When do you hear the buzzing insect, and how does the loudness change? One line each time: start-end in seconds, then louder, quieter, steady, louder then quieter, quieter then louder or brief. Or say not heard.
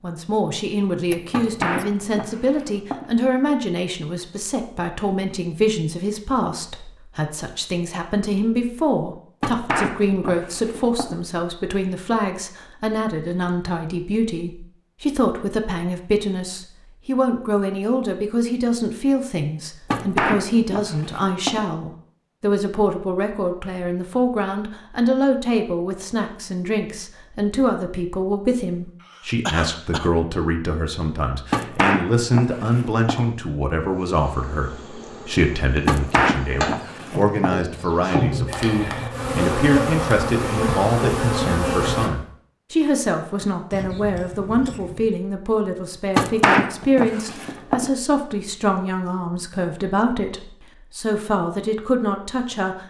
33.0-42.1 louder.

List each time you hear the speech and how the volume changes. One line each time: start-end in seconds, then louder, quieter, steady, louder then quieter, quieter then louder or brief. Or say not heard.
0.0-52.8 steady.